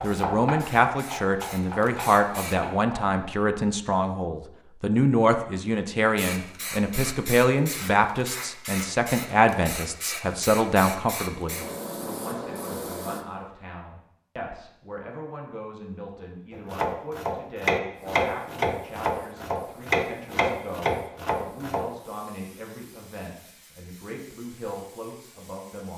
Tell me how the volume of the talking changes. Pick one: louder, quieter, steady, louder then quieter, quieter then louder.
quieter.